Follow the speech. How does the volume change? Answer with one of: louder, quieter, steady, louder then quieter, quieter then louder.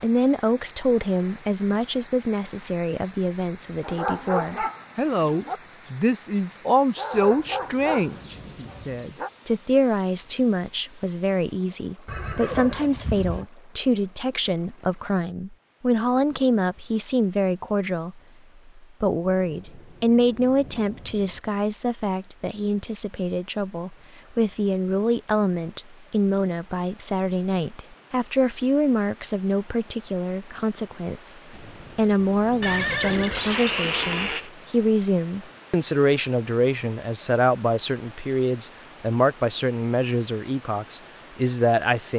steady.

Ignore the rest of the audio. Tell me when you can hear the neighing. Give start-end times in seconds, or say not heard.
12.1-13.5, 32.6-34.5.